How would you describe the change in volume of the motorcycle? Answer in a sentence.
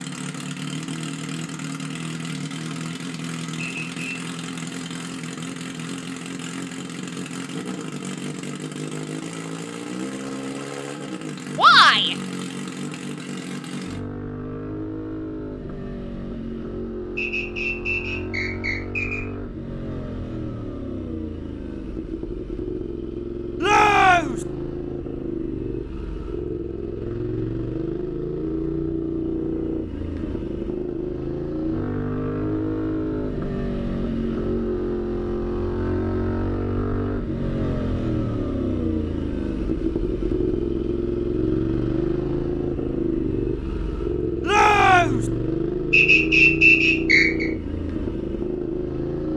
The volume of the motorcycle goes up.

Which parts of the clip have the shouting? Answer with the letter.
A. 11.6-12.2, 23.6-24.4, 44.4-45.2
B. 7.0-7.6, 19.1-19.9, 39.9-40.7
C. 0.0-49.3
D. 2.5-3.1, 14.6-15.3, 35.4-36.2
A.